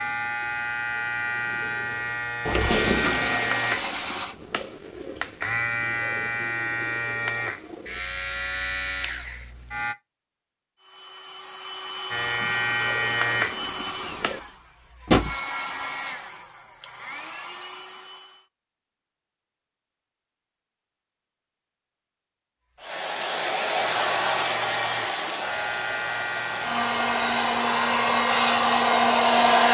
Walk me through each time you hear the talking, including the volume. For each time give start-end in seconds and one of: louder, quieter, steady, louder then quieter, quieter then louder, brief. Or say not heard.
not heard.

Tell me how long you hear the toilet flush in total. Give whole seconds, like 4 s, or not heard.
2 s.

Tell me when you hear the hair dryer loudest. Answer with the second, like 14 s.
29 s.